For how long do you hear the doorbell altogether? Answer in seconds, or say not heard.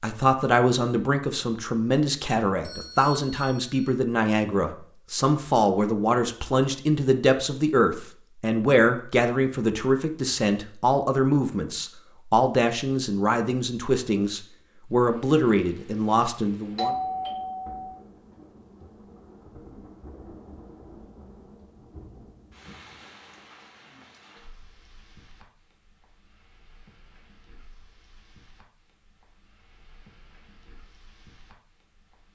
3 s.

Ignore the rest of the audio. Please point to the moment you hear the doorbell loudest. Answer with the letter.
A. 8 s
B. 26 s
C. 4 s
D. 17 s
D.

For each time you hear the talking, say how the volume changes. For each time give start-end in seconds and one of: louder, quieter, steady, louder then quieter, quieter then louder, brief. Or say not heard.
0.0-16.9 steady.